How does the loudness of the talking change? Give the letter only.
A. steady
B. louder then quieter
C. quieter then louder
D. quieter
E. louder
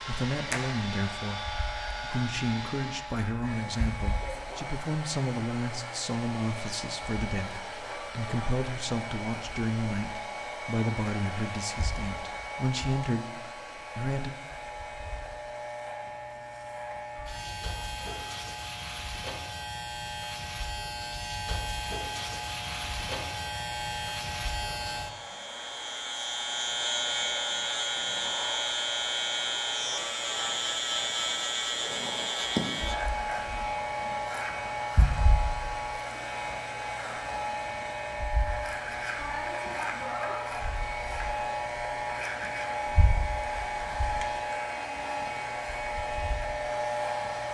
A.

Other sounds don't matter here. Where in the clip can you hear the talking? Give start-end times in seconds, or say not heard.
0.1-14.3.